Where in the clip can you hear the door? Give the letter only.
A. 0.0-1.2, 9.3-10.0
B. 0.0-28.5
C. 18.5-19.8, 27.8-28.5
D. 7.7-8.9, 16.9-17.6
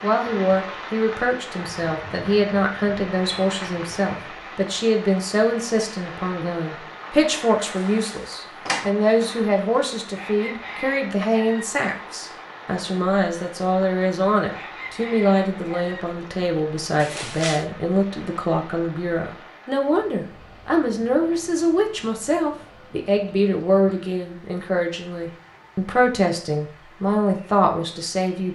D.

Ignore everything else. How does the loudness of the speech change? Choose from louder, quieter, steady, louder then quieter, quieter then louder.
steady.